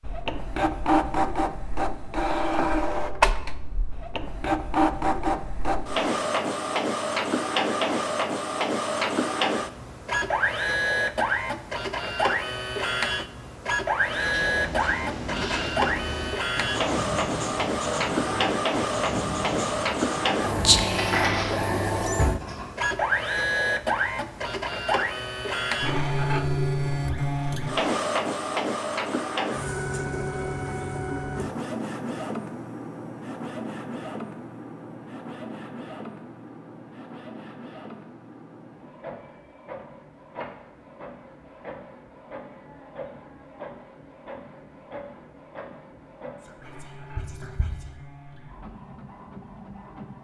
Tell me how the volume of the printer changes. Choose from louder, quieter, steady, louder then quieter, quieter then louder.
quieter.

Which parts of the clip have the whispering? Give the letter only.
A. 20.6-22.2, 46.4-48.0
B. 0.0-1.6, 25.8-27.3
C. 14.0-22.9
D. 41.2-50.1
A.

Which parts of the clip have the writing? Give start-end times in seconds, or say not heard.
14.0-22.9.